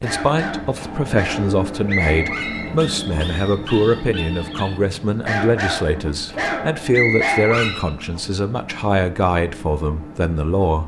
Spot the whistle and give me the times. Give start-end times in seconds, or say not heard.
1.9-3.4, 6.9-8.2.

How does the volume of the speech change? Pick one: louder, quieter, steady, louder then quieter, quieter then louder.
steady.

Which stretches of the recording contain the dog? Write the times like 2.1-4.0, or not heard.
0.0-8.1.